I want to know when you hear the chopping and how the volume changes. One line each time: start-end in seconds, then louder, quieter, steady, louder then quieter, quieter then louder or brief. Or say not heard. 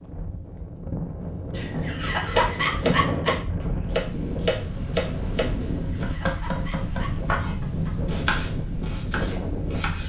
2.2-10.0 steady.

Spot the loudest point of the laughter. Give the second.
3 s.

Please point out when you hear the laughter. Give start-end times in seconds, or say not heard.
1.5-3.4, 5.6-7.9.